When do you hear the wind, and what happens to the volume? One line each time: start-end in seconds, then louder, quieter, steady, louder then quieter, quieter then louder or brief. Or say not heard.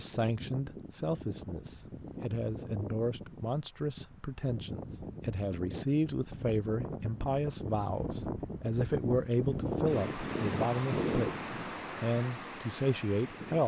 0.0-13.6 louder.